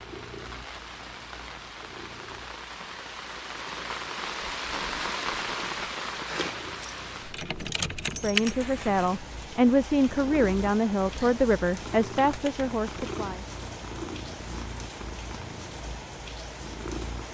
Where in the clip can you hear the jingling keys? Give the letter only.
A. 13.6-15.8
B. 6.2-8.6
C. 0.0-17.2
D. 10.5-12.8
B.